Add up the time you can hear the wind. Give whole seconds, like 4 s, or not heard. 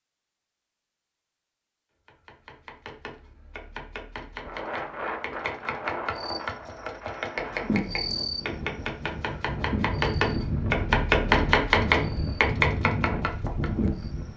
10 s.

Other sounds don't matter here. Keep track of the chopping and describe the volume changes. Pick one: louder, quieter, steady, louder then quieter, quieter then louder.
louder.